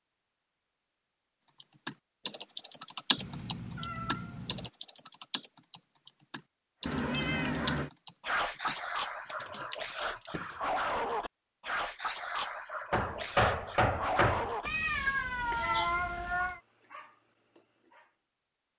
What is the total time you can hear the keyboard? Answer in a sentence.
The keyboard can be heard for 9 seconds in total.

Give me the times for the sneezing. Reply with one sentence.
The sneezing can't be heard in this clip.